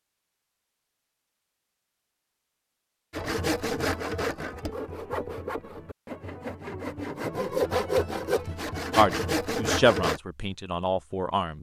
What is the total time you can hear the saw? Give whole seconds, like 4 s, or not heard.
7 s.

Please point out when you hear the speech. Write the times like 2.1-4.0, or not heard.
8.9-11.5.